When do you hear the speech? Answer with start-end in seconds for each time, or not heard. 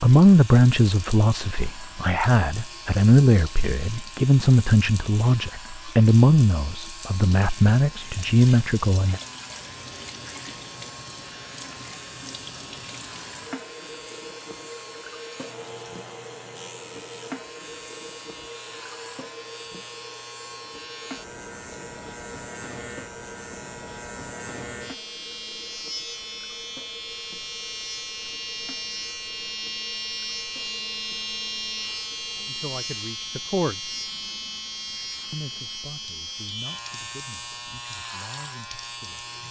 0.0-9.2, 32.5-33.9, 35.3-39.2.